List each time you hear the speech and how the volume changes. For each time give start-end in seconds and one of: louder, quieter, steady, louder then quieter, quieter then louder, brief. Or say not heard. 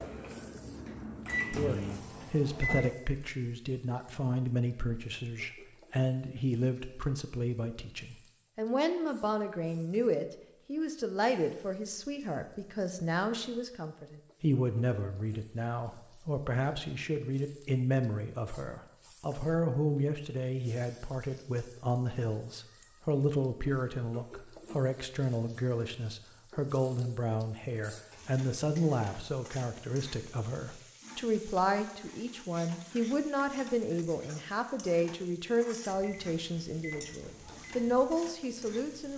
1.5-39.1 steady.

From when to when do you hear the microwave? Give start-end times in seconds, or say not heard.
0.0-3.0, 36.0-39.1.